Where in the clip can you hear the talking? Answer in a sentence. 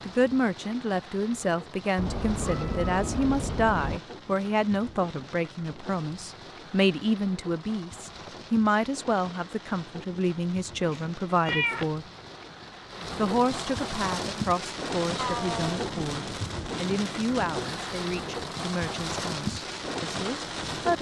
The talking can be heard from 0.1 to 12.1 s and from 13.2 to 20.9 s.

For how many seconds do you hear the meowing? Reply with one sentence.
The meowing can be heard for 4 seconds in total.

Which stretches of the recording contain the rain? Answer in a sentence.
You can hear the rain from 0.0 to 20.9 s.